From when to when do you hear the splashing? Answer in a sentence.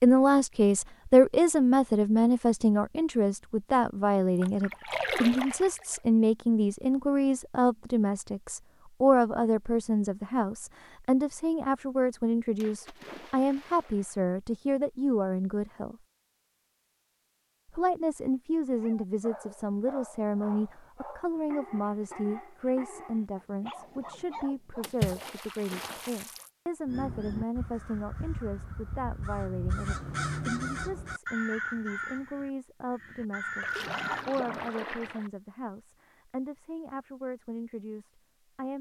You can hear the splashing from 4.3 to 6.0 s, from 12.6 to 14.1 s, from 24.8 to 26.5 s and from 33.6 to 35.3 s.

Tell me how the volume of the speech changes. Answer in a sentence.
The loudness of the speech goes down.